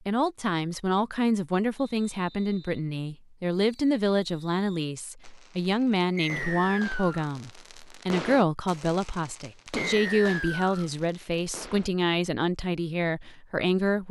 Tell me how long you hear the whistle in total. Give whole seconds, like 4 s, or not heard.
3 s.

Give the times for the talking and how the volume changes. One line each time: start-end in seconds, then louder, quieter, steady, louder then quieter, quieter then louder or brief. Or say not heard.
0.1-14.0 steady.